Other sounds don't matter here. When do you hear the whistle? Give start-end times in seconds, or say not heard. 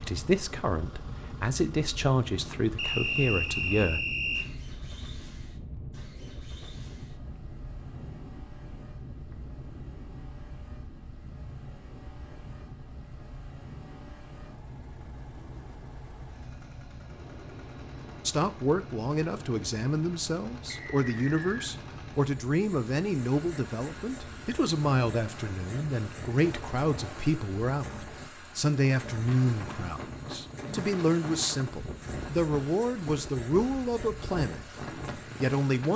2.8-4.5, 20.7-21.7.